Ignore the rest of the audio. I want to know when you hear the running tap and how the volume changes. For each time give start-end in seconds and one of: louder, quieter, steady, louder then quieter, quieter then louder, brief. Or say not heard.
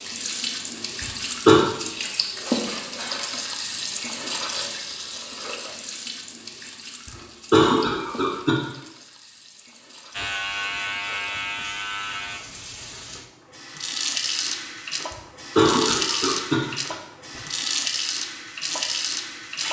0.0-19.6 quieter then louder.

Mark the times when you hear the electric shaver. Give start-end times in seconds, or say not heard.
10.1-12.4.